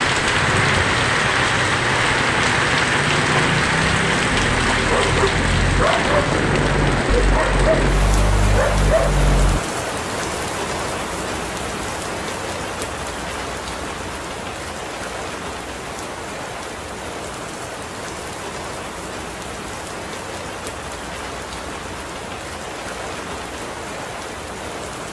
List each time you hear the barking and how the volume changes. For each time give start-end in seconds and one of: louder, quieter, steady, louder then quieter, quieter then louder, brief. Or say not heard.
4.3-9.6 steady.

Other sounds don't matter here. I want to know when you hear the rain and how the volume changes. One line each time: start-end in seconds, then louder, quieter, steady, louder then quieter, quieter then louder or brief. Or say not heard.
0.0-25.0 quieter.